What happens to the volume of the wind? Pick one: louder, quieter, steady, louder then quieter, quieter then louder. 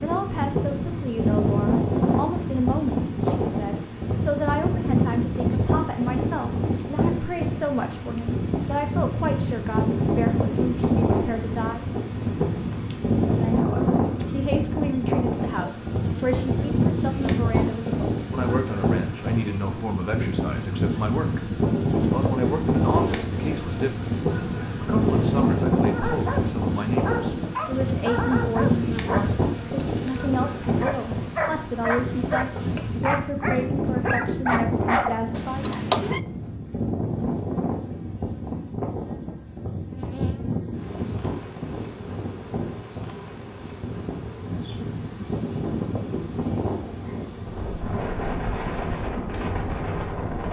quieter.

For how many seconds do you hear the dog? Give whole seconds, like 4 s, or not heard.
9 s.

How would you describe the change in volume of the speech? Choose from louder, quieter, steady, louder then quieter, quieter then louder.
steady.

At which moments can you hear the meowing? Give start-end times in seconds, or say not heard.
35.3-36.2.